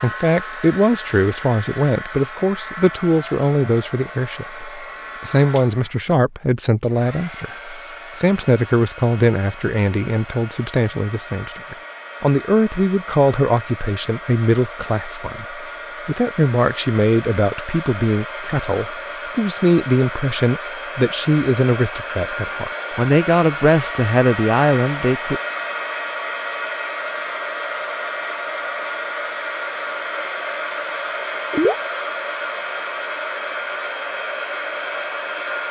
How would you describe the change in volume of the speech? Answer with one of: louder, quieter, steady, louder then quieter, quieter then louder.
steady.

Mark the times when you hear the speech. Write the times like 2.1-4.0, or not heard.
0.0-25.4.